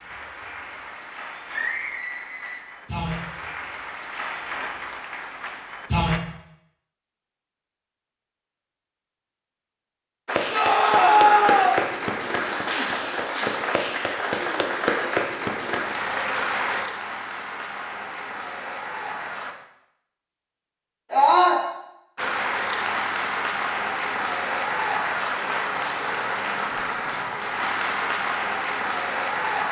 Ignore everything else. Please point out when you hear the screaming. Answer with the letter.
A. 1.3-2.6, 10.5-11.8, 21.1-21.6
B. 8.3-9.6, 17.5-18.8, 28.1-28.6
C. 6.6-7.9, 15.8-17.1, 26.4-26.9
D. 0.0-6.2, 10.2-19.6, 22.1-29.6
A.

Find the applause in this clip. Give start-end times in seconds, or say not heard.
0.0-6.2, 10.2-19.6, 22.1-29.6.